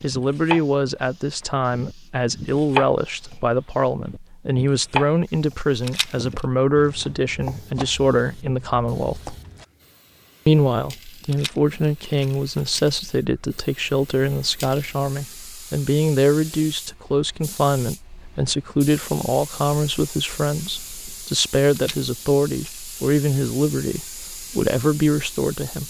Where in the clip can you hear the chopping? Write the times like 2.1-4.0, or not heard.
0.0-9.7.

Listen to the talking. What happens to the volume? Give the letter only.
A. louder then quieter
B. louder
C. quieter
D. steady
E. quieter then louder
D.